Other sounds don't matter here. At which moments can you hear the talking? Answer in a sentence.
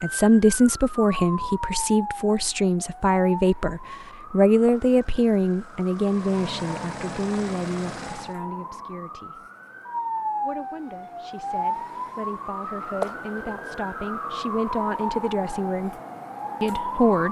You can hear the talking from 0.0 to 9.4 s, from 10.4 to 15.9 s and from 16.6 to 17.2 s.